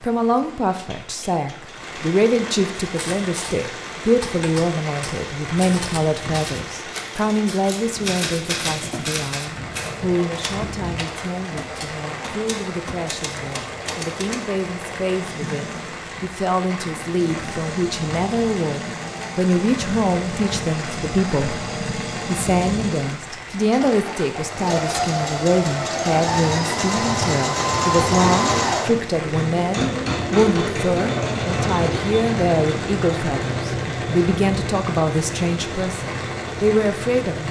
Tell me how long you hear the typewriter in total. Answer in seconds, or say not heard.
12 s.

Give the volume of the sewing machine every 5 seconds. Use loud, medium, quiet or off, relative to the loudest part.
quiet, quiet, quiet, medium, medium, loud, loud, medium.